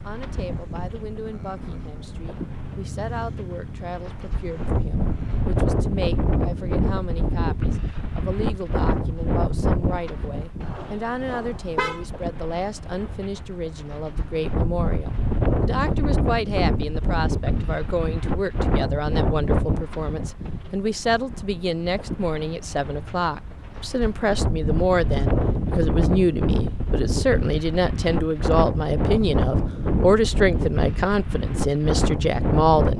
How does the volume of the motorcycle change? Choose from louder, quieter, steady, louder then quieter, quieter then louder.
louder then quieter.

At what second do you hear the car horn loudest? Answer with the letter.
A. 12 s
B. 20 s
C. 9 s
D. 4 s
A.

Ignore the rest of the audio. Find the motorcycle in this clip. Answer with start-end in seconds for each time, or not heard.
0.0-5.5.